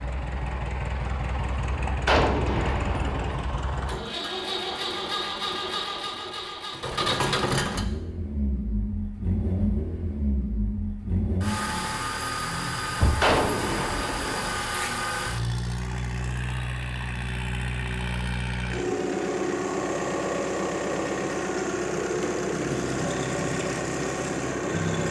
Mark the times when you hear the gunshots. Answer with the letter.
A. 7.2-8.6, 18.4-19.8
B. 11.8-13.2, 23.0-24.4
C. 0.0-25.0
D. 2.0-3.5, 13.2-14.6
D.